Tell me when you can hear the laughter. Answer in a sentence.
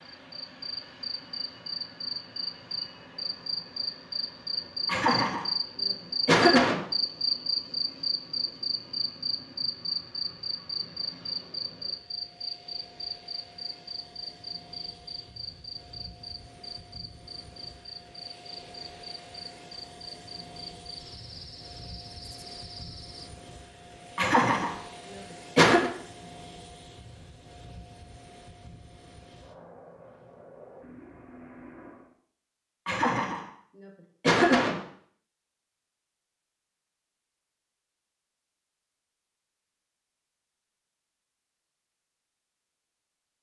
You can hear the laughter from 4.8 to 6.8 s, from 24.1 to 25.9 s and from 32.9 to 34.8 s.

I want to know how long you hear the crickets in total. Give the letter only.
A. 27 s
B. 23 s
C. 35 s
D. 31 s
B.